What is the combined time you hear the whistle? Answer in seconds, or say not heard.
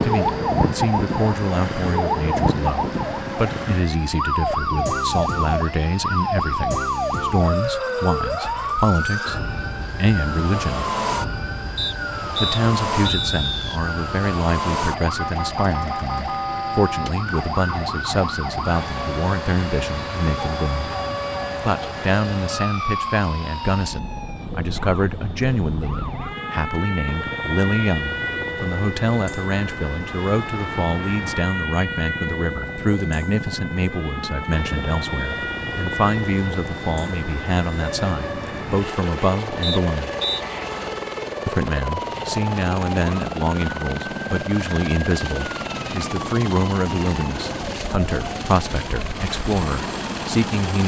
3 s.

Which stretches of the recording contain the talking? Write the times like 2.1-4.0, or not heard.
0.0-10.8, 12.4-20.9, 21.6-40.1, 41.5-50.8.